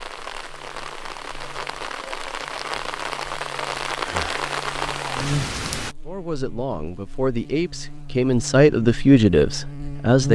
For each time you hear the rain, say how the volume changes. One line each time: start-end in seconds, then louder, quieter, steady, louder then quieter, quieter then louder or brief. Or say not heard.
0.0-6.0 louder.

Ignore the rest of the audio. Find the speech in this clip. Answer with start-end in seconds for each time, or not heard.
6.0-10.2.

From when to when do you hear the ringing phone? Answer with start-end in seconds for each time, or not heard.
not heard.